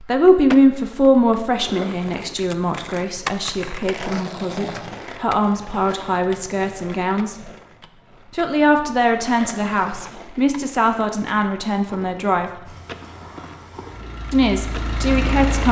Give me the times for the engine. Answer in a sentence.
You can hear the engine from 12.6 to 15.6 s.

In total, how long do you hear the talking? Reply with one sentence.
You can hear the talking for 13 seconds altogether.